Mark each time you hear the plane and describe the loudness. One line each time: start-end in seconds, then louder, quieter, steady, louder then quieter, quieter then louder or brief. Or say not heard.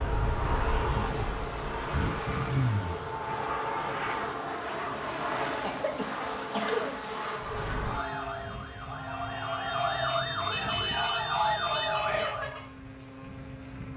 0.0-13.9 quieter.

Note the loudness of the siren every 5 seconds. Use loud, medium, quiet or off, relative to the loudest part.
medium, medium, loud.